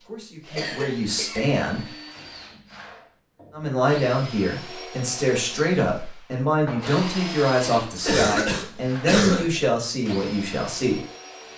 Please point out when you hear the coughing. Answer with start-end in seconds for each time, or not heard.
0.6-1.4, 8.0-9.6.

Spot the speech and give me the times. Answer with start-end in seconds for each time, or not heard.
0.0-1.9, 3.5-11.1.